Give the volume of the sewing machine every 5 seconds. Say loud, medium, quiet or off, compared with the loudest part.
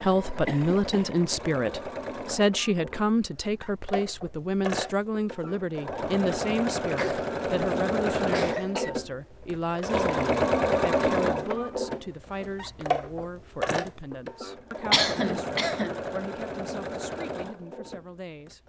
medium, loud, loud, medium.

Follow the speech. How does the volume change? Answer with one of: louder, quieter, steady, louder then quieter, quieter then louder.
quieter.